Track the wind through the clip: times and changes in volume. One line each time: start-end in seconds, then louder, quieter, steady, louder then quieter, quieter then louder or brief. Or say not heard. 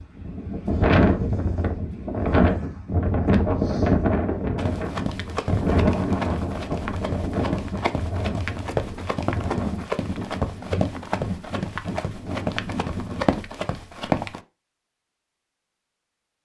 0.0-13.2 quieter.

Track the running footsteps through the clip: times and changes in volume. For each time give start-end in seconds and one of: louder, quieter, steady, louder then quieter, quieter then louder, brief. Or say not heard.
4.5-14.4 steady.